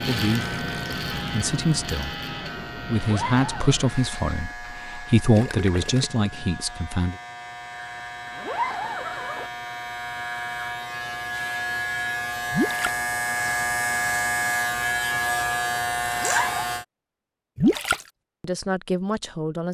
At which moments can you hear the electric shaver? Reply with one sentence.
You can hear the electric shaver from 0.0 to 16.9 s.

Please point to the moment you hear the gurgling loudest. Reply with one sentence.
The loudest moment of the gurgling is at 18 seconds.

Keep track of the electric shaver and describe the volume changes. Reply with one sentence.
The loudness of the electric shaver goes down, then up.